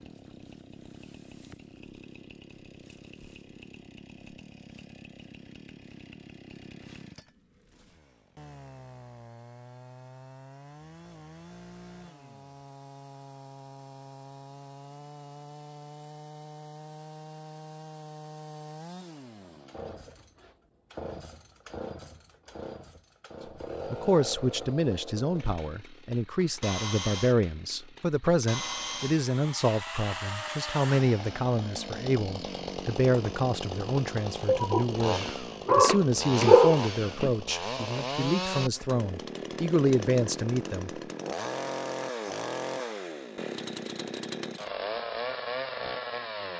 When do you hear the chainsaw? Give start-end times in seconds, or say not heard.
0.0-46.5.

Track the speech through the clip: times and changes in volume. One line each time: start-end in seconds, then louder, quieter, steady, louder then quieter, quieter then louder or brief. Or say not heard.
23.9-41.0 steady.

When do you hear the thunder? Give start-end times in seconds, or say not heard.
not heard.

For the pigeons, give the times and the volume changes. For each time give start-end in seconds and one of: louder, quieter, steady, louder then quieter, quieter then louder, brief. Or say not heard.
not heard.